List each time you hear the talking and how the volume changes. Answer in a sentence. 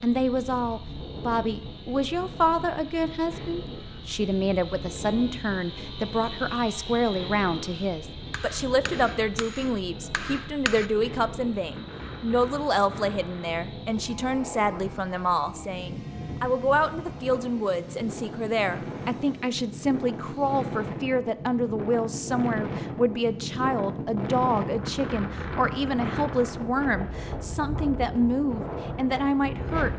You can hear the talking from 0.0 to 29.9 s, at a steady volume.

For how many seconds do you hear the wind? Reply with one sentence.
The wind can be heard for 30 seconds in total.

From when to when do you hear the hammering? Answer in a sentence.
You can hear the hammering from 8.3 to 10.9 s.